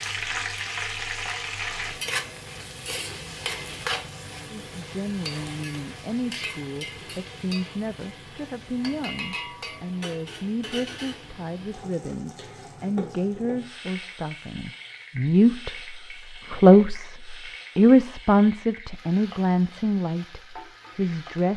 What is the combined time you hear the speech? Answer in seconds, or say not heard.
17 s.